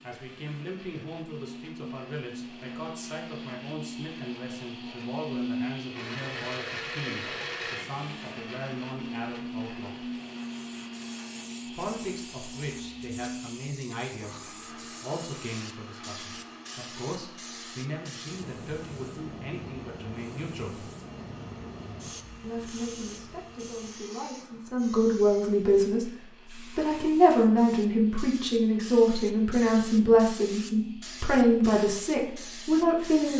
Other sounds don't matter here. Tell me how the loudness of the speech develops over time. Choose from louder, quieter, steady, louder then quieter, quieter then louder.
louder.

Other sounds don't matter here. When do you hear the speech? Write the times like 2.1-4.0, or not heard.
0.0-10.1, 11.7-20.9, 22.4-33.3.